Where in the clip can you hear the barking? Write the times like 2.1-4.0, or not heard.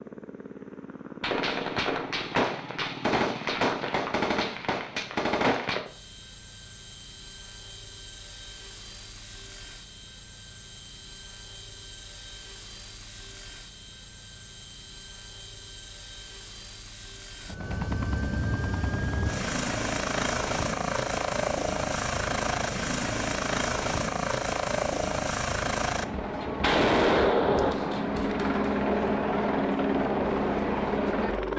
not heard.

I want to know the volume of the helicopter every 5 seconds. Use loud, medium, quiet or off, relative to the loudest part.
quiet, quiet, quiet, medium, loud, loud, loud.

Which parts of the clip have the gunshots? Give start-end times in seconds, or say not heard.
1.2-5.8, 26.2-28.8.